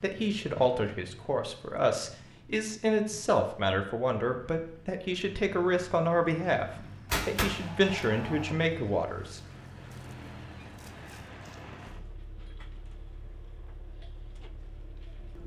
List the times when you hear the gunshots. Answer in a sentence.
The gunshots can be heard from 7.1 to 8.6 s.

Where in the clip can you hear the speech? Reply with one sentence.
The speech can be heard from 0.0 to 9.4 s.